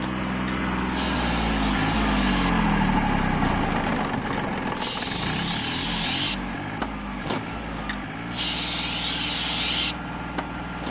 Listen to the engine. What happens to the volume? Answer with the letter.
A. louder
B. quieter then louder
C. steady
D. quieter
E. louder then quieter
D.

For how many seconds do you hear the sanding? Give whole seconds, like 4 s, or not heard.
not heard.